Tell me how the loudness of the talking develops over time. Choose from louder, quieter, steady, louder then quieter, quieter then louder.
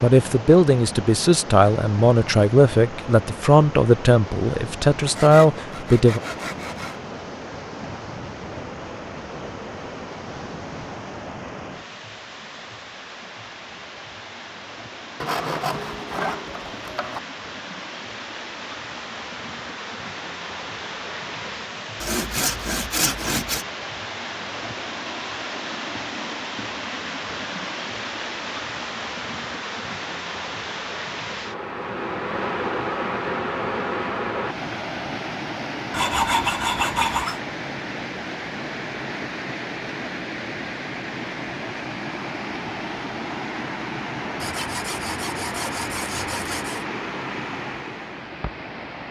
steady.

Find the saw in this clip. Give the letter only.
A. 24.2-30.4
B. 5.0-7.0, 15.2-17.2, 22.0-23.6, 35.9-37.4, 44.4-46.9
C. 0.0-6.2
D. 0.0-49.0
B.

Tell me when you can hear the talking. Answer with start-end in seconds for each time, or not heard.
0.0-6.2.